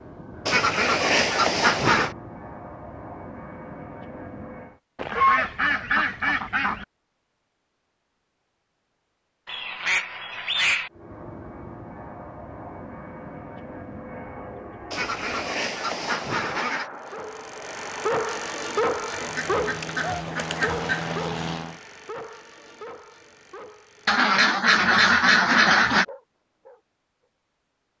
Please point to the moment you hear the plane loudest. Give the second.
21 s.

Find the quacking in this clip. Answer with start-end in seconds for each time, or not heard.
0.5-2.1, 5.0-6.8, 9.4-10.9, 14.9-16.9, 19.1-21.1, 24.1-26.1.